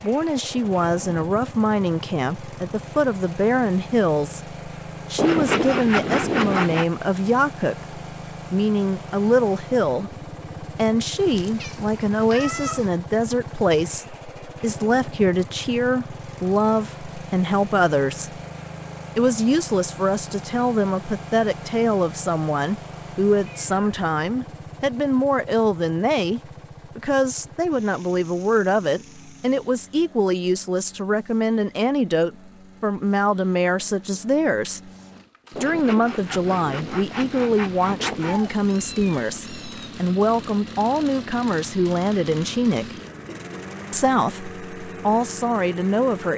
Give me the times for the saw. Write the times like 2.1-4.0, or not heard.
5.2-6.8, 35.5-38.5.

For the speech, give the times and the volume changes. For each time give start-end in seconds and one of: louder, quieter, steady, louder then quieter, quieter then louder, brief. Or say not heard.
0.0-18.4 steady
19.1-34.9 steady
35.5-43.0 steady
43.9-46.3 brief.